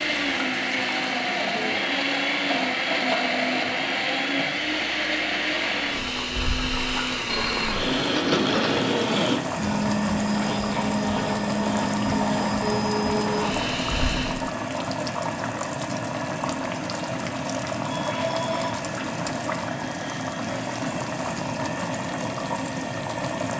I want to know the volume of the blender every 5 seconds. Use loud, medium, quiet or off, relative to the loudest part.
loud, loud, loud, off, off.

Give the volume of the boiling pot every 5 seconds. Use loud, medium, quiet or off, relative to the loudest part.
medium, loud, loud, loud, loud.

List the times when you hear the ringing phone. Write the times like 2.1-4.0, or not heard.
7.2-8.8, 17.8-18.8.